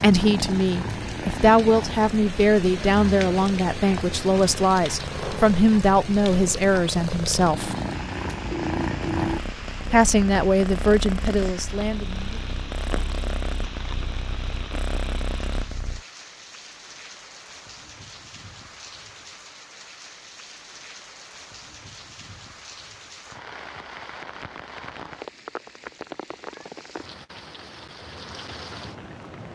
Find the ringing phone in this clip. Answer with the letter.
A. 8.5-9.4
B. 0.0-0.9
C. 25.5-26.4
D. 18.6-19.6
A.